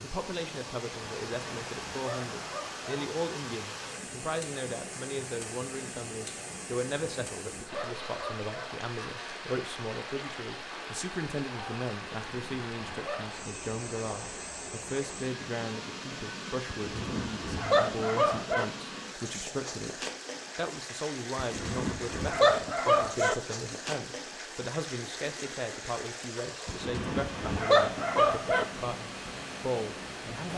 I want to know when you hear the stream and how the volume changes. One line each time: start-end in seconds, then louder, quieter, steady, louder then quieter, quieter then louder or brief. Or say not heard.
0.0-30.5 steady.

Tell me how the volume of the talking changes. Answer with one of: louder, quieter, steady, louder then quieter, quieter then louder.
steady.